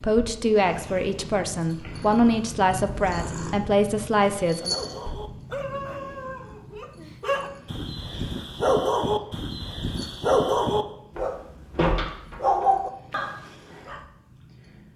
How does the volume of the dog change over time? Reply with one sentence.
The loudness of the dog goes up.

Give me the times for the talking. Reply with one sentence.
You can hear the talking from 0.0 to 4.8 s.